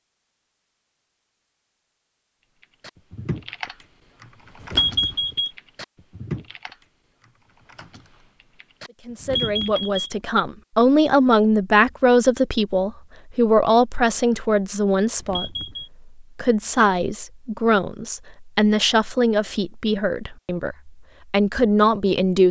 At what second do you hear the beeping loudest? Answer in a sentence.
The volume of the beeping peaks at 5 seconds.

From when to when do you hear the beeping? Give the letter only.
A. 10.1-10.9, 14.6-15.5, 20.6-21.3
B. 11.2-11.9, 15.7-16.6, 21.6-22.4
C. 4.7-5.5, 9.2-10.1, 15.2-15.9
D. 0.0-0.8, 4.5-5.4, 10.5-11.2
C.